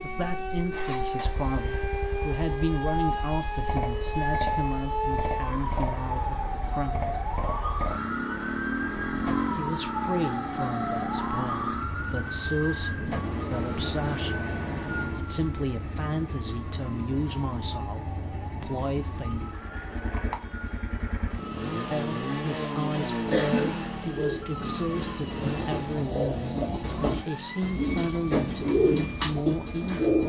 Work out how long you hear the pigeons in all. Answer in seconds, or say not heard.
7 s.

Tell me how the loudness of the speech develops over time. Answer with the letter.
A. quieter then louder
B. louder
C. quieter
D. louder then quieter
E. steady
E.